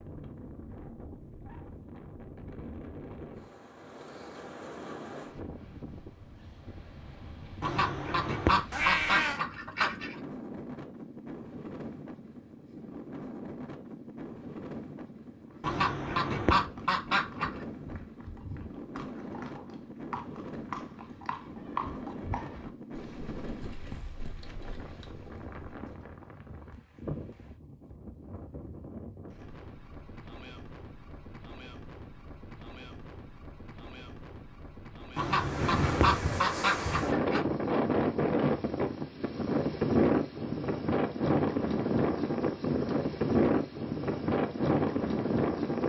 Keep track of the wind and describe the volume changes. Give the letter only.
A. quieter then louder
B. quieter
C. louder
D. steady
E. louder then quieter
C.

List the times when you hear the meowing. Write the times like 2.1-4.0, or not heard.
8.7-9.4.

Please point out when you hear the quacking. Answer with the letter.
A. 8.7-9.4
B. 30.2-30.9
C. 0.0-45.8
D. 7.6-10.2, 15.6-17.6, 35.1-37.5
D.